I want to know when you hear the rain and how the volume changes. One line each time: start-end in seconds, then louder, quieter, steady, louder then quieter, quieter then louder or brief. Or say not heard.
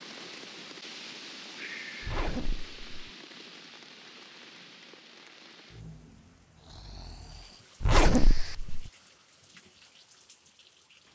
0.0-11.1 quieter.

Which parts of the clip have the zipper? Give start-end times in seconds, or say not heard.
2.0-3.0, 7.8-8.9.